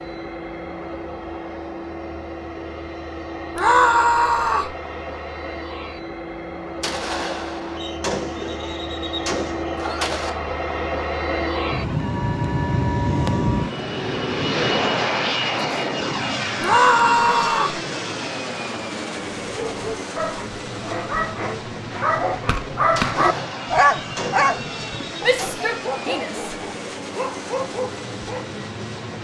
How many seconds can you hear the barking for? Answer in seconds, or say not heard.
9 s.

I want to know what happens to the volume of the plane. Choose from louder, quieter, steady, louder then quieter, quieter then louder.
louder then quieter.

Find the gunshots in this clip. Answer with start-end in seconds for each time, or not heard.
6.8-10.3, 22.9-25.6.